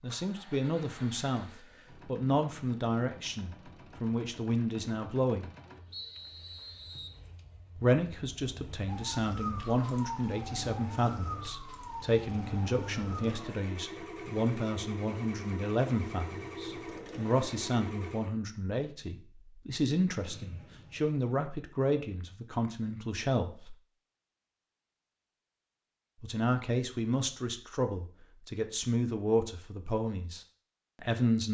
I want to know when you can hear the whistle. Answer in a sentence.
You can hear the whistle from 5.9 to 7.2 s and from 20.3 to 21.1 s.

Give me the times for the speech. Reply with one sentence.
The speech can be heard from 0.0 to 5.5 s, from 7.8 to 23.8 s and from 26.2 to 31.4 s.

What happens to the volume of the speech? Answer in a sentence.
The volume of the speech stays about the same.